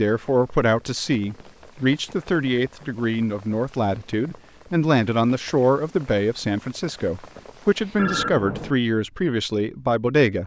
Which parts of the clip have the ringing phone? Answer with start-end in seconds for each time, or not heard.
1.1-2.6, 8.0-8.8.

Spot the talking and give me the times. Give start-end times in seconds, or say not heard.
0.0-10.4.